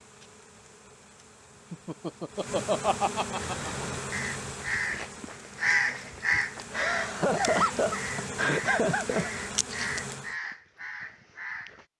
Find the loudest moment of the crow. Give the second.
6 s.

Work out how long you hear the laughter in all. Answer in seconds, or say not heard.
5 s.